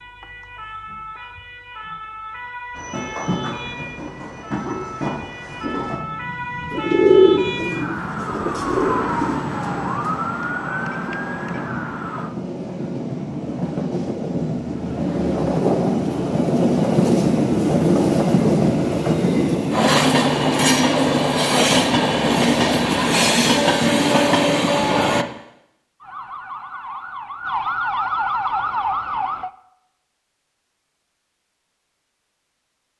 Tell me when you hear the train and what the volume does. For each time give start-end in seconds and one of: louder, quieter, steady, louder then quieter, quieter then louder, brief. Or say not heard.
2.8-25.2 louder.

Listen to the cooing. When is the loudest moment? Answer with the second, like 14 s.
7 s.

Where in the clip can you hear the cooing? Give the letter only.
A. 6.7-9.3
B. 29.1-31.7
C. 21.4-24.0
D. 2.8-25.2
A.